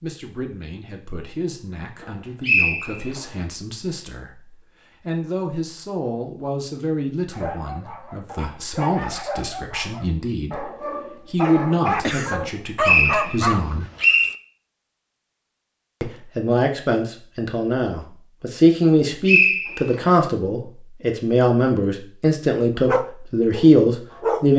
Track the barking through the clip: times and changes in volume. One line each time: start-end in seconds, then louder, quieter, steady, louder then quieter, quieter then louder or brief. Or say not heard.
7.3-14.3 louder
22.9-24.4 brief.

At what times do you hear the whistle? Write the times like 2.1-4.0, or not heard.
2.0-3.2, 12.4-14.3, 19.2-20.1.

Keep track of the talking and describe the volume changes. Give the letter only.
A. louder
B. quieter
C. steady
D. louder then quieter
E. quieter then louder
A.